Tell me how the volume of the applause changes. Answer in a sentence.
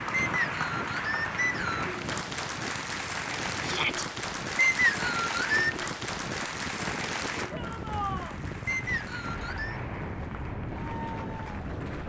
The volume of the applause goes down.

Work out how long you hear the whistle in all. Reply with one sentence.
The whistle can be heard for 4 seconds in total.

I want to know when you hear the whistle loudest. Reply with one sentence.
The volume of the whistle peaks at 5 seconds.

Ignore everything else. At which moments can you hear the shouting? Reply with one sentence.
You can hear the shouting from 3.6 to 4.0 s and from 7.5 to 8.4 s.